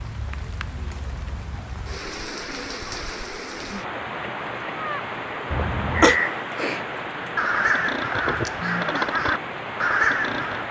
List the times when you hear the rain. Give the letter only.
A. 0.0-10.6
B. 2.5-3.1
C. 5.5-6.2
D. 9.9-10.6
A.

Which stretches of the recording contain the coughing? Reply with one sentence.
You can hear the coughing from 5.5 to 6.2 s.